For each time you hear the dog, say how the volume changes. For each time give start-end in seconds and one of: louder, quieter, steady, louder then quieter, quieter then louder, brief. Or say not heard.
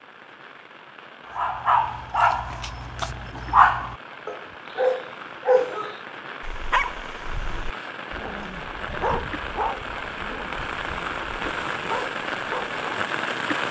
1.4-12.8 quieter.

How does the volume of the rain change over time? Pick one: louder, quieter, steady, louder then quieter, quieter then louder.
louder.